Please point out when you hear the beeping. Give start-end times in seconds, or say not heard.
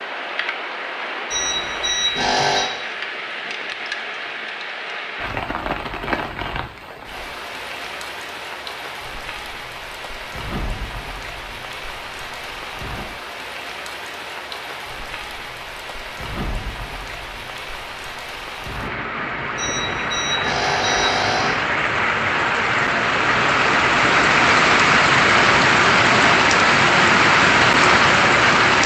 1.3-2.6, 19.6-21.6.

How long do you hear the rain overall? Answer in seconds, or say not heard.
29 s.